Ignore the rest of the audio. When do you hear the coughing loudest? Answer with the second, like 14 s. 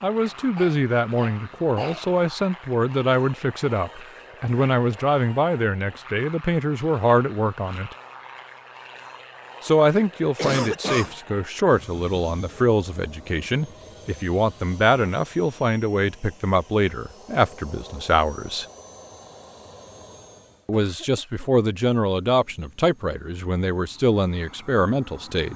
11 s.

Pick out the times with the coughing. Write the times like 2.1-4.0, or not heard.
0.2-2.0, 10.3-11.2, 20.7-21.5.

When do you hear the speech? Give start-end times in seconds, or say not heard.
0.0-7.9, 9.6-18.6, 20.6-25.5.